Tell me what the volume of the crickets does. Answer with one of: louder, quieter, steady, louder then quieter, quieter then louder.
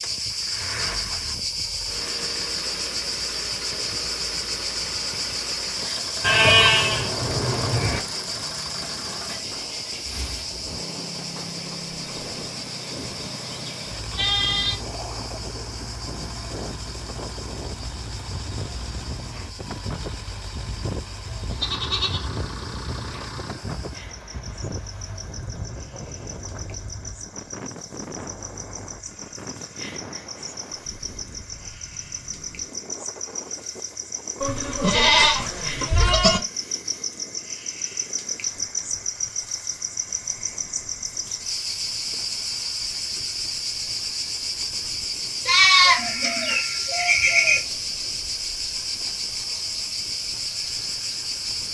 quieter then louder.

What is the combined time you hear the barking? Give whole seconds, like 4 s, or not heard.
not heard.